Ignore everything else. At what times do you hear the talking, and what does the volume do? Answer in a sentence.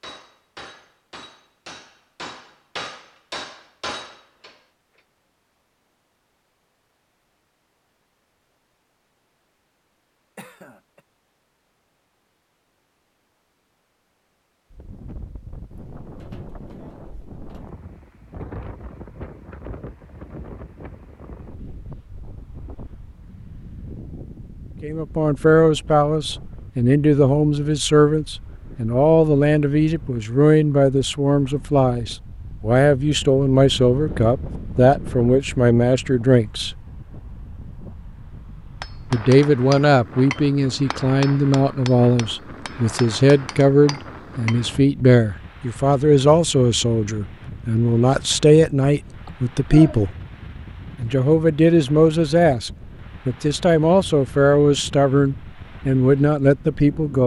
The talking can be heard from 24.8 to 36.8 s, at a steady volume; from 39.1 to 50.1 s, at a steady volume; and from 51.0 to 57.2 s, getting quieter then louder.